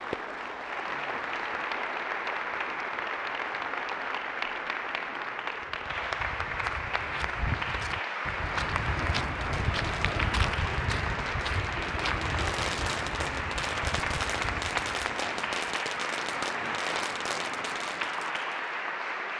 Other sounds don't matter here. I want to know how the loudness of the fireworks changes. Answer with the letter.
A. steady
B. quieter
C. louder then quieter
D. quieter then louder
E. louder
E.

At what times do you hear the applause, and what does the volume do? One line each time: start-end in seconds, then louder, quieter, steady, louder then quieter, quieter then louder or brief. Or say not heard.
0.0-19.3 steady.